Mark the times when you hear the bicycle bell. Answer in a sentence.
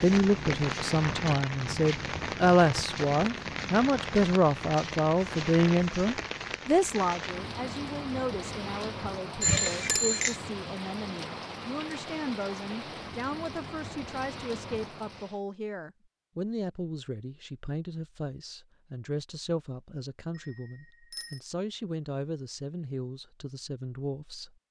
You can hear the bicycle bell from 9.4 to 10.3 s and from 20.4 to 21.4 s.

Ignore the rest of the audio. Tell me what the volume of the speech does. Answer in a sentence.
The volume of the speech goes down.